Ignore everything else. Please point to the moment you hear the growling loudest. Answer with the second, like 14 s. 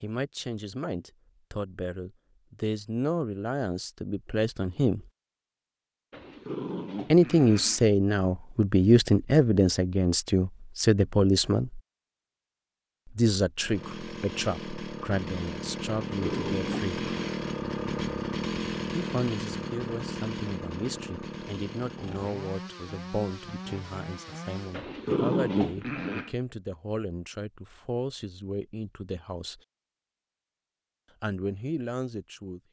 25 s.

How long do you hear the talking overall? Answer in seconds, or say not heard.
26 s.